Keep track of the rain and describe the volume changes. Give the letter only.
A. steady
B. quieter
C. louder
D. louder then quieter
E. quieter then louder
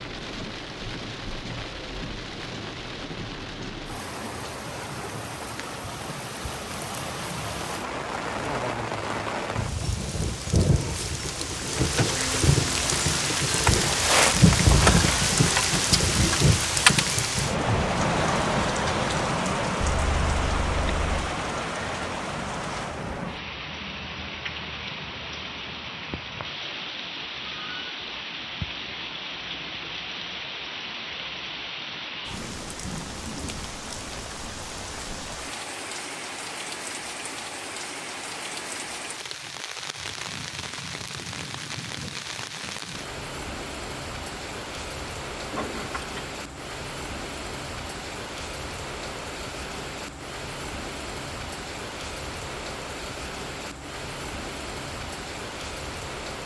D.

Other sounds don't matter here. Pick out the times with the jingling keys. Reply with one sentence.
You can hear the jingling keys from 11.8 to 12.7 s, from 19.8 to 21.3 s and from 45.5 to 46.2 s.